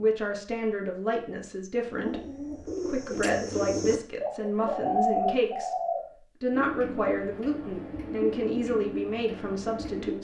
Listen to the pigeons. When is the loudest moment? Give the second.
5 s.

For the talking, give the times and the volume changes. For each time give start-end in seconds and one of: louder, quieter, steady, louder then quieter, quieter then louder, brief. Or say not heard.
0.0-10.1 steady.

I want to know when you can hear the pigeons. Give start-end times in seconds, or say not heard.
1.8-10.1.